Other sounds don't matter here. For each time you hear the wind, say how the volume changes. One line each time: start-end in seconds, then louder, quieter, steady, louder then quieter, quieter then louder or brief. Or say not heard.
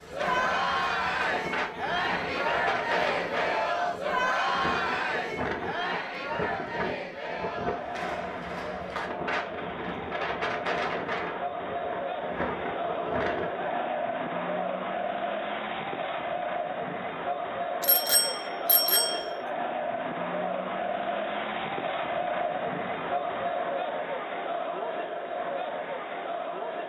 0.0-13.7 steady.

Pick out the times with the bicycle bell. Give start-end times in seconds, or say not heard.
17.8-19.2.